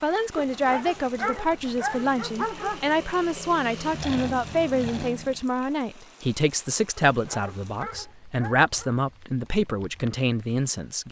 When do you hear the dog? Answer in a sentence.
You can hear the dog from 0.3 to 2.9 s and from 7.0 to 9.1 s.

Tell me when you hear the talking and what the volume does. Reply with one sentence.
The talking can be heard from 0.0 to 11.0 s, at a steady volume.